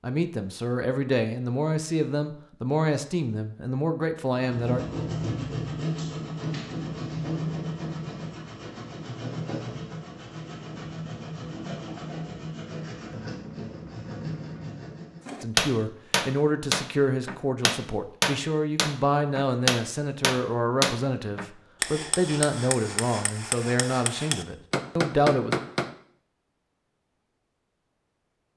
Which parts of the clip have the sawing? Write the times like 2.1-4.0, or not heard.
4.3-15.2.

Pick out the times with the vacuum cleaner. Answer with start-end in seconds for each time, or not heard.
not heard.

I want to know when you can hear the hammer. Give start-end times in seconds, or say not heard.
15.2-25.9.